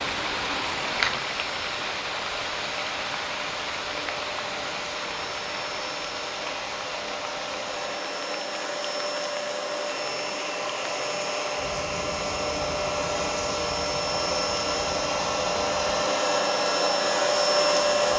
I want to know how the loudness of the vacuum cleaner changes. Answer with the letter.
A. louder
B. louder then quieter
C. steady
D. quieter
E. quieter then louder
A.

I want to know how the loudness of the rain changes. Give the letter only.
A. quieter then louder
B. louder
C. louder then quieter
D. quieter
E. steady
D.